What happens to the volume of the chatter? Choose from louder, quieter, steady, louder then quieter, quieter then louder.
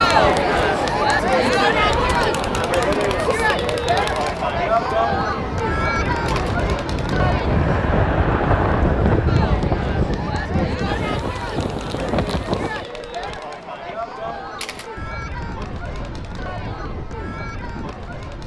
quieter.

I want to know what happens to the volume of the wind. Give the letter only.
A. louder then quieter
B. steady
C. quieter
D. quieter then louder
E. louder
A.